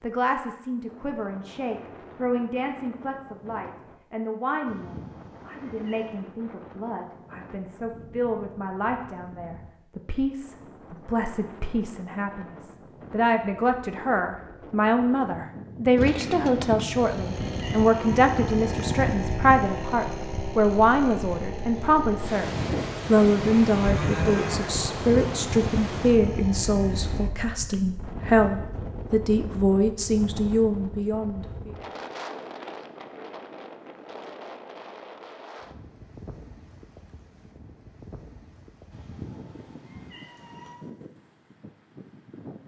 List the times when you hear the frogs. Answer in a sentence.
The frogs can't be heard in this clip.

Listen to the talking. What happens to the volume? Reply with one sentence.
The loudness of the talking goes up.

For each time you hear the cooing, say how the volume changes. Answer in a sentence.
You can't hear the cooing here.